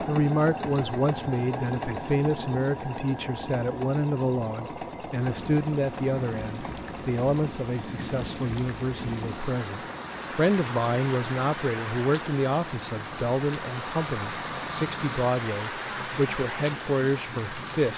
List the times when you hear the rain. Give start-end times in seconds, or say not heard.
5.1-17.9.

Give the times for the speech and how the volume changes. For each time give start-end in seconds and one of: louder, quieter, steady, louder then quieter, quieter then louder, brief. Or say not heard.
0.0-17.9 steady.